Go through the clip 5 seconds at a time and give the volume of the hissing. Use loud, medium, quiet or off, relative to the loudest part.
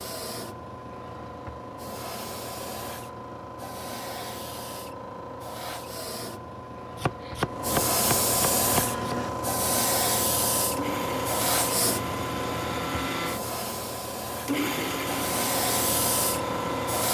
medium, loud, loud, loud.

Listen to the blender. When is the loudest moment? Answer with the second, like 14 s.
15 s.